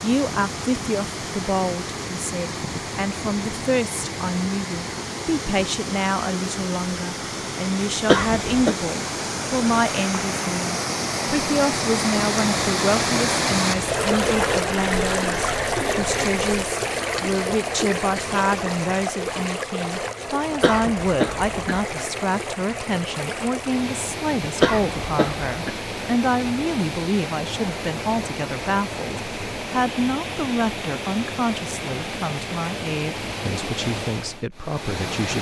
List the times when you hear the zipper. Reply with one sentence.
You can't hear the zipper here.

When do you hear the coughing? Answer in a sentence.
The coughing can be heard from 8.1 to 8.8 s, from 20.6 to 21.9 s and from 24.6 to 25.8 s.